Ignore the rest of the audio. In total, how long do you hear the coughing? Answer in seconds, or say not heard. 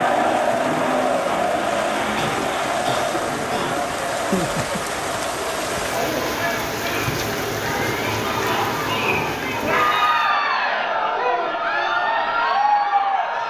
2 s.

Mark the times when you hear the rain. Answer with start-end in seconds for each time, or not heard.
0.0-10.3.